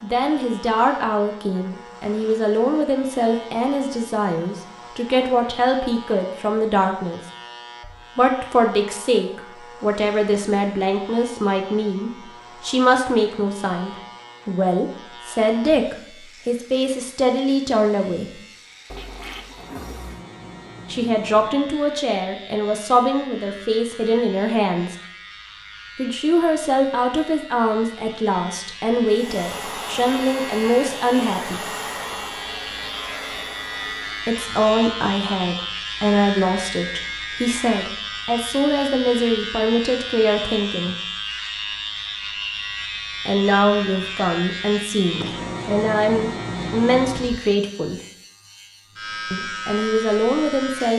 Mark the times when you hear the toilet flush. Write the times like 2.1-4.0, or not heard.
18.9-20.2.